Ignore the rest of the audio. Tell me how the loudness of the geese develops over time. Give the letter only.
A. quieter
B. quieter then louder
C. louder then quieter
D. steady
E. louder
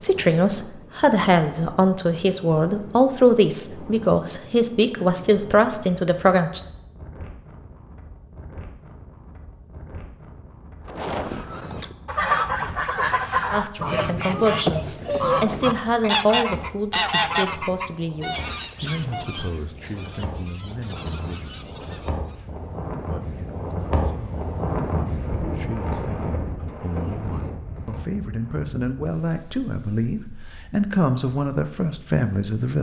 A.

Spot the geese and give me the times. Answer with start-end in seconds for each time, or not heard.
10.8-22.5.